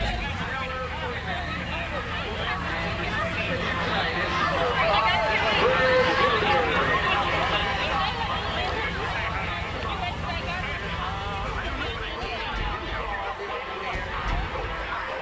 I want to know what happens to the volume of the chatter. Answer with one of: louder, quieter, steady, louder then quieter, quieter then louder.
louder then quieter.